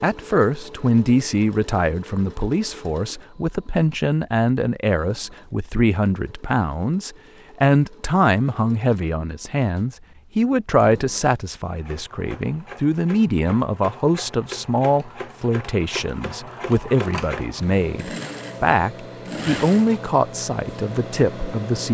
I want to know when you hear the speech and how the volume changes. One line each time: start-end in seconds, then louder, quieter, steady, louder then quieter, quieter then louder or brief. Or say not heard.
0.0-21.8 steady.